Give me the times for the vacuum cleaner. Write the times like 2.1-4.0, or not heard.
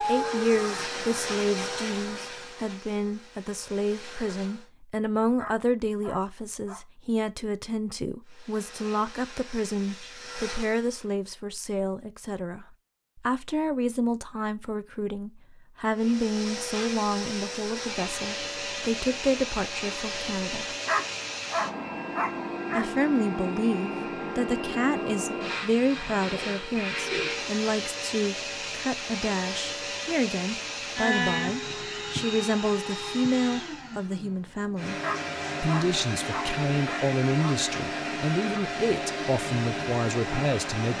0.0-4.7, 8.2-11.2, 15.9-40.9.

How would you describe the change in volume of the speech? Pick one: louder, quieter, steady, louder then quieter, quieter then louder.
steady.